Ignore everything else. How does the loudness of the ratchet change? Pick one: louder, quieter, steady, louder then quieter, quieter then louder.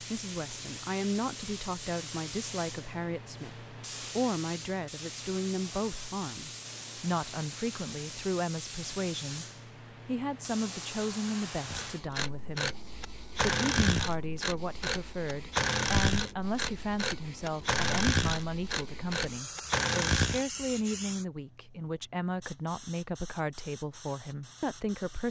steady.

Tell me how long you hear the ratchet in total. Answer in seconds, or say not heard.
9 s.